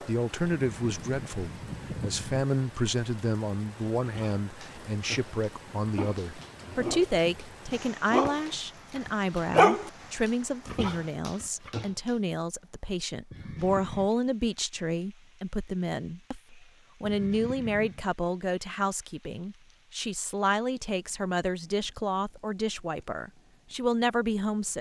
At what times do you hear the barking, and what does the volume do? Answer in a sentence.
The barking can be heard from 4.0 to 12.2 s, getting louder then quieter.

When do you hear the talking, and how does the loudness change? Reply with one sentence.
You can hear the talking from 0.0 to 24.7 s, at a steady volume.